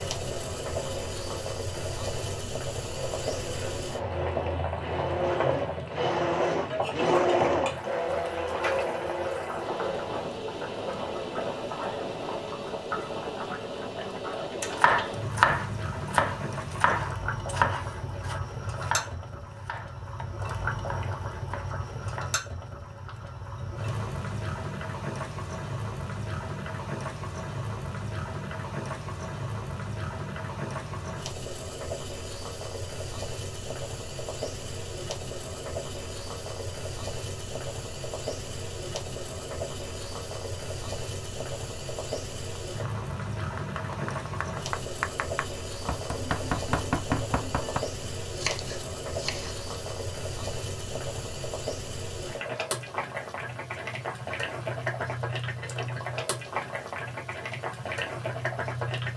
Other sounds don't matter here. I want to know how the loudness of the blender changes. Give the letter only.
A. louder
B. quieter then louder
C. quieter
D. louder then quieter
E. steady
D.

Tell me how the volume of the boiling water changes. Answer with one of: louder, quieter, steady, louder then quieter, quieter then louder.
steady.